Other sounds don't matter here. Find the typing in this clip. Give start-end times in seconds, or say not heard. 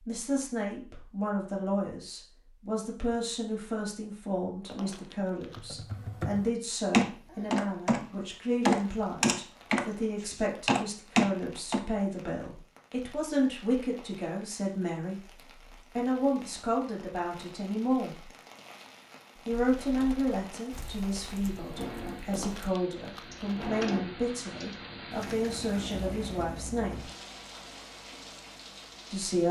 5.5-11.8, 19.5-25.6.